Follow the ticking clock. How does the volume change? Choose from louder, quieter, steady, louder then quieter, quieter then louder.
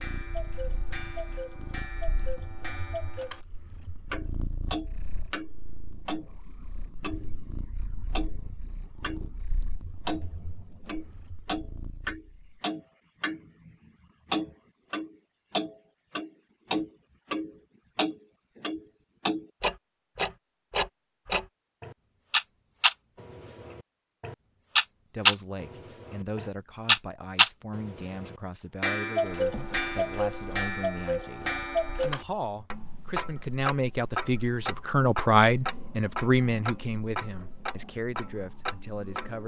louder then quieter.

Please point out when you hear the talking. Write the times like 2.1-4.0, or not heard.
25.1-39.4.